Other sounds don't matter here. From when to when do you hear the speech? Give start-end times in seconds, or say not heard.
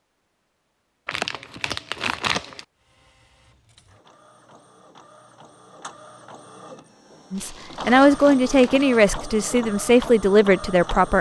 7.3-11.1.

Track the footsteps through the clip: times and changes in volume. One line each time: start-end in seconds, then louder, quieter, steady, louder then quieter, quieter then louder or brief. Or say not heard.
not heard.